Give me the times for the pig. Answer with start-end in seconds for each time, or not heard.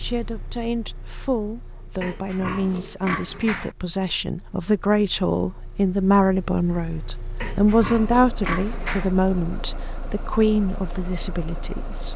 2.0-3.8, 7.4-9.2.